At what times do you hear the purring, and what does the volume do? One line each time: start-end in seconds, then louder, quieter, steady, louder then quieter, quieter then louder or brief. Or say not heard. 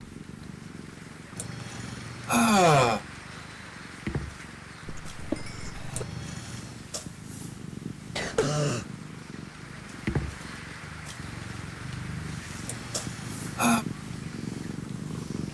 0.0-15.5 louder.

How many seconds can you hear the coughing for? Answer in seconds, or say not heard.
2 s.